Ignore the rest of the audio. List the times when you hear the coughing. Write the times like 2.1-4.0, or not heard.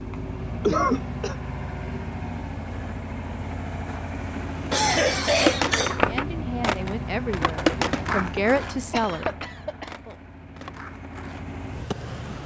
0.6-1.4, 4.7-6.8, 8.9-10.2.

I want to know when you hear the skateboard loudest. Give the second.
6 s.